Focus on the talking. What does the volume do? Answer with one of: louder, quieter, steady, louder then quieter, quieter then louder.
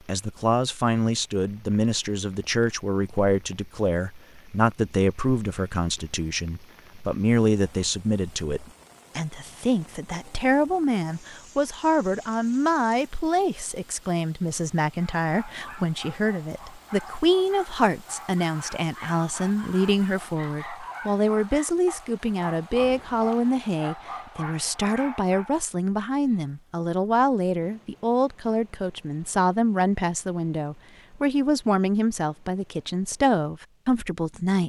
steady.